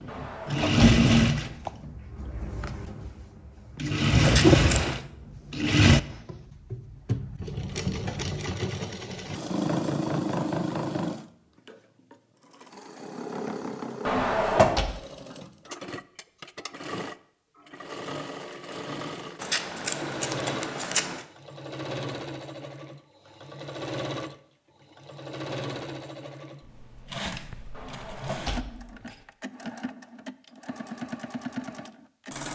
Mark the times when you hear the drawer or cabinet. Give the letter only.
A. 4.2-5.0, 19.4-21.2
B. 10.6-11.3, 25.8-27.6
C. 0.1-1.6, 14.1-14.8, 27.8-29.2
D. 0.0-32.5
C.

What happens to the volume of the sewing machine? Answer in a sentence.
The volume of the sewing machine goes down.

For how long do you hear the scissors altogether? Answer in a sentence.
You can hear the scissors for 3 seconds altogether.